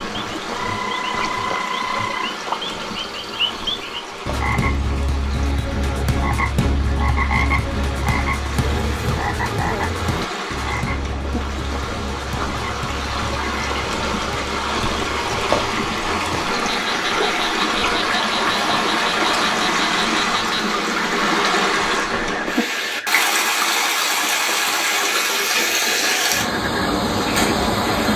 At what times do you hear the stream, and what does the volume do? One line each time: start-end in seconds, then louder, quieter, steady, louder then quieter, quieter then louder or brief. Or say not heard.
0.0-28.1 louder.